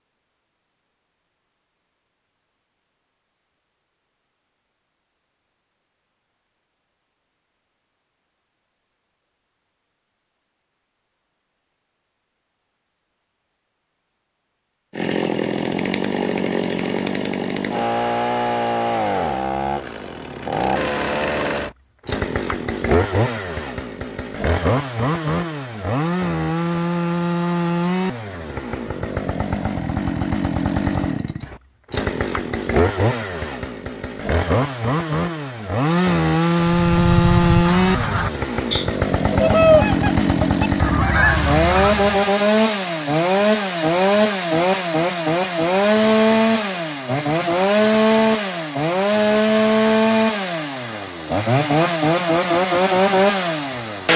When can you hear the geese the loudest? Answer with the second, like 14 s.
40 s.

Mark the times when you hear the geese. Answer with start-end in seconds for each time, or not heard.
36.6-42.2.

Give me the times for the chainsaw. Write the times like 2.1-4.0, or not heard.
14.9-54.1.